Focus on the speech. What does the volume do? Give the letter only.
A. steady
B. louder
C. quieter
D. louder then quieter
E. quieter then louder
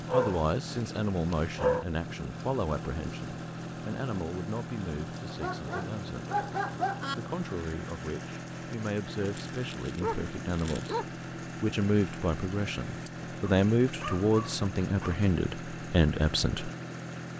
E.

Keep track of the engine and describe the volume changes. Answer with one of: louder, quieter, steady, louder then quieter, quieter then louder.
steady.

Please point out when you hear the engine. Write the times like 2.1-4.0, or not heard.
0.0-17.3.